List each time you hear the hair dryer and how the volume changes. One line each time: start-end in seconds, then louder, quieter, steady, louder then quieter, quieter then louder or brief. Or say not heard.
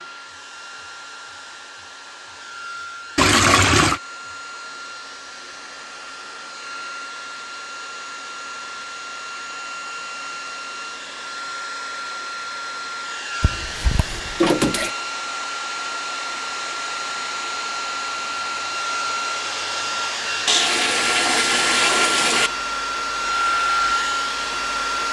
0.0-25.0 louder.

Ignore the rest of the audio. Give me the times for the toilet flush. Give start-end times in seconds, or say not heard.
3.1-4.0, 13.4-14.9, 20.4-22.5.